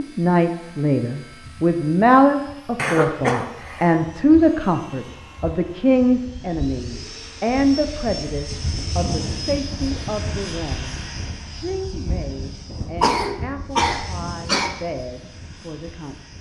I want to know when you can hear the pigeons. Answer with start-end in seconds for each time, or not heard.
not heard.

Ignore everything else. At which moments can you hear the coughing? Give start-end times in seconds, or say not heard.
2.8-4.0, 13.0-14.8.